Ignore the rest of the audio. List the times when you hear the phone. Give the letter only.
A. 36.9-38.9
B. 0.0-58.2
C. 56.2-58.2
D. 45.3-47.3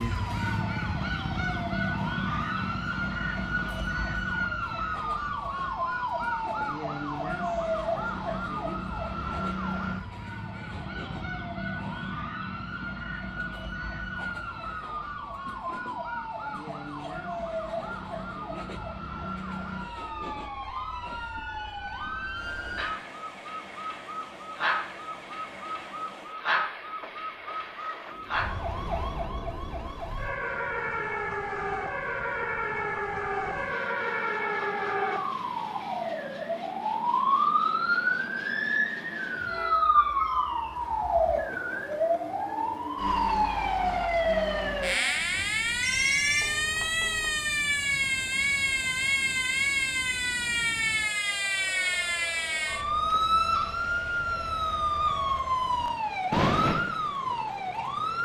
D.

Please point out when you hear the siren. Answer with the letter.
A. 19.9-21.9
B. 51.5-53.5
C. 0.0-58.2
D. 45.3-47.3
C.